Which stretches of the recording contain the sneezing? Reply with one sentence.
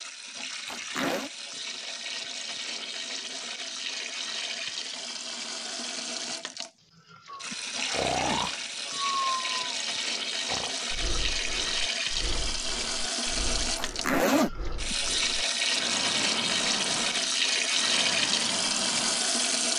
You can't hear the sneezing here.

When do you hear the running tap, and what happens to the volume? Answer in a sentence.
The running tap can be heard from 0.0 to 19.7 s, getting louder.